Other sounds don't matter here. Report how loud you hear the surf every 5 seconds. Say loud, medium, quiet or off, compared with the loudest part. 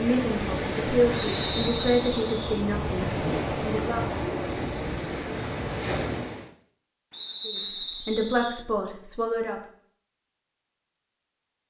loud, loud, off.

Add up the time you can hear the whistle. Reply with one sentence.
You can hear the whistle for 3 seconds altogether.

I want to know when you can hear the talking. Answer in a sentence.
You can hear the talking from 0.0 to 4.0 s and from 7.5 to 9.6 s.